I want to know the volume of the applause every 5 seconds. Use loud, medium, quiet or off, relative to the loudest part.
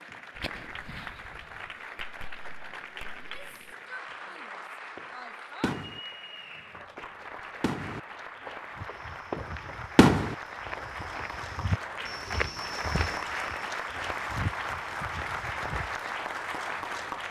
medium, medium, loud, loud.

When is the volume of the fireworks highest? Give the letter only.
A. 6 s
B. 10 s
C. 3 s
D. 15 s
B.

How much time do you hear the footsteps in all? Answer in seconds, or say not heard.
7 s.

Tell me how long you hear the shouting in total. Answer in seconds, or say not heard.
3 s.